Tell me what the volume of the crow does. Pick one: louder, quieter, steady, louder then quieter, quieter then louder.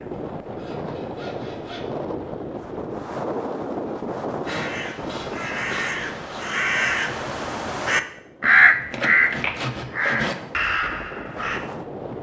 louder then quieter.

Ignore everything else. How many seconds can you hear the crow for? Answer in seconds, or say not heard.
7 s.